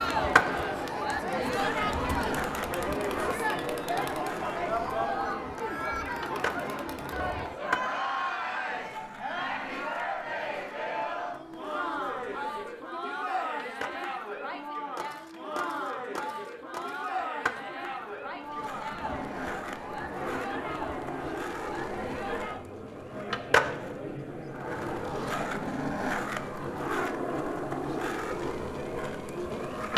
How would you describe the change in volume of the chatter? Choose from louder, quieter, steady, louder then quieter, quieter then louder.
quieter.